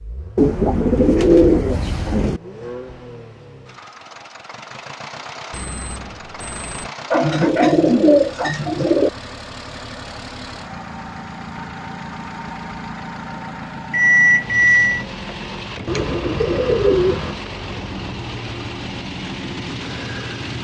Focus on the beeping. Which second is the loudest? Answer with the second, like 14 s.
14 s.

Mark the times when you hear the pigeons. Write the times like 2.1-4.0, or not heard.
0.3-2.4, 7.1-9.1, 15.8-17.4.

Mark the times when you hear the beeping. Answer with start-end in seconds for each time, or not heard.
5.5-6.9, 13.9-15.1.